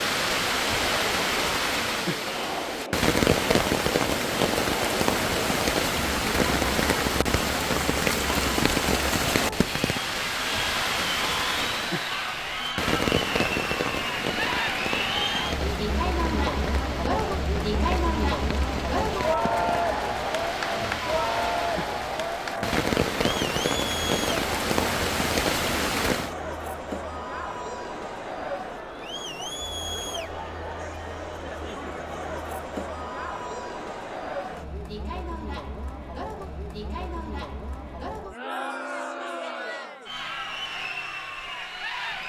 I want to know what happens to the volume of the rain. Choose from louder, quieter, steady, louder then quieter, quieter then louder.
quieter then louder.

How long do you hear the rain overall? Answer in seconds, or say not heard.
26 s.